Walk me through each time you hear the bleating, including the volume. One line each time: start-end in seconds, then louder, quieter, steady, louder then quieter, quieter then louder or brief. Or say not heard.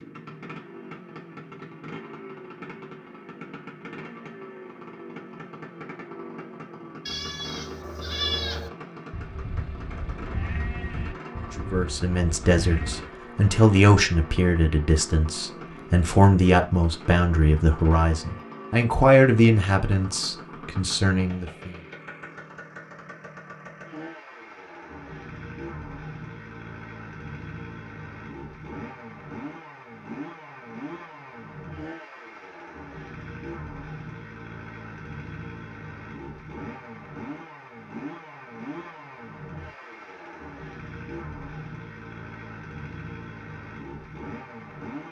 7.0-13.1 quieter.